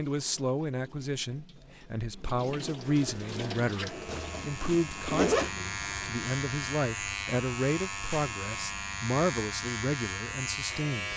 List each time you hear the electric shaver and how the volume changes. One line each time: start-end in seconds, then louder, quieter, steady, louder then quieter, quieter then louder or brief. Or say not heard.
2.8-11.1 louder.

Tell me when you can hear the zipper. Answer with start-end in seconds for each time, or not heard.
4.0-5.5.